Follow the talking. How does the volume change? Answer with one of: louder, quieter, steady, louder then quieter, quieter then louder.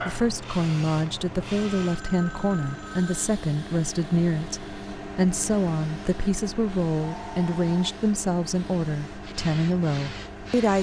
steady.